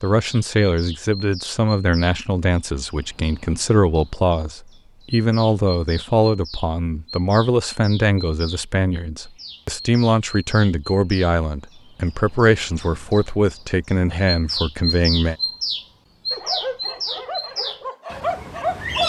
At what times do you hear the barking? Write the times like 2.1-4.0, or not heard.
16.3-19.0.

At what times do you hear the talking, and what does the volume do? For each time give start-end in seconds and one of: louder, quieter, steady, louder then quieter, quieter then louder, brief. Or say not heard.
0.0-15.3 steady.